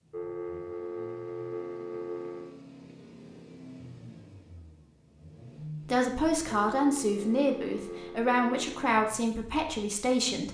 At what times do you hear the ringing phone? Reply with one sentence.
You can hear the ringing phone from 0.1 to 2.5 s and from 6.5 to 8.8 s.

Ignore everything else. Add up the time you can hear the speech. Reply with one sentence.
You can hear the speech for 5 seconds altogether.